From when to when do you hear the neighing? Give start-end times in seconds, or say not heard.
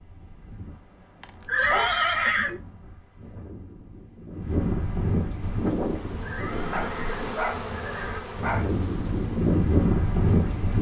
1.4-2.6, 6.2-8.2.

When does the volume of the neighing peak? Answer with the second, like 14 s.
2 s.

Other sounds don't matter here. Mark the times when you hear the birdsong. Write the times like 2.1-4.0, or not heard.
not heard.